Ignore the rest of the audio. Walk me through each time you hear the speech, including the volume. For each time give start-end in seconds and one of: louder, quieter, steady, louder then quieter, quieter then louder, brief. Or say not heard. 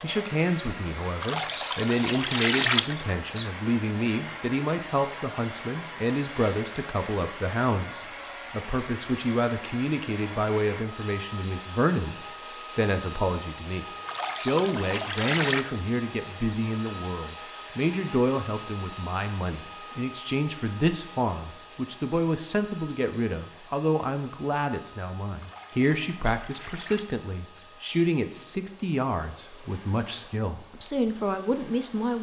0.0-32.1 steady.